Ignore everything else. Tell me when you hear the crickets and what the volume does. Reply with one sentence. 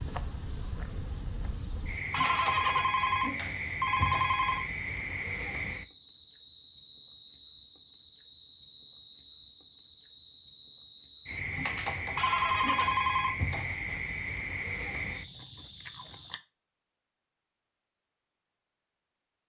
The crickets can be heard from 0.0 to 16.4 s, at a steady volume.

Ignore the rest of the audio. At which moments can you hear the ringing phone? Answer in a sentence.
You can hear the ringing phone from 2.1 to 4.7 s and from 12.2 to 13.4 s.